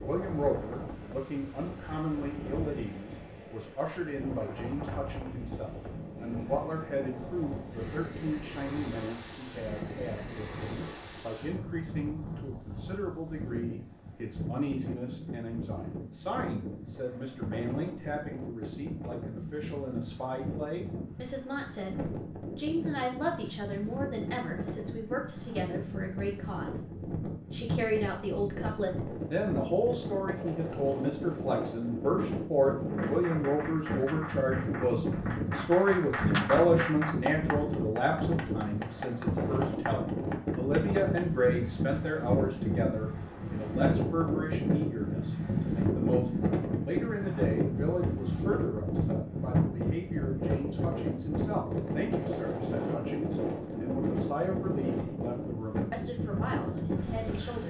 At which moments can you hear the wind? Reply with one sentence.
You can hear the wind from 0.0 to 57.6 s.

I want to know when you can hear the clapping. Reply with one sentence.
The clapping can be heard from 32.9 to 41.2 s.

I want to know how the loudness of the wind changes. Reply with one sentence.
The loudness of the wind goes up.